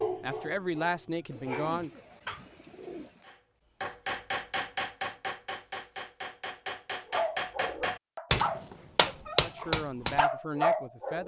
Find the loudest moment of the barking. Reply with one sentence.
The volume of the barking peaks at 11 seconds.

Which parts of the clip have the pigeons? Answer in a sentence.
The pigeons can be heard from 1.3 to 3.2 s.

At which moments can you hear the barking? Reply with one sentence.
You can hear the barking from 0.0 to 2.4 s and from 7.1 to 11.2 s.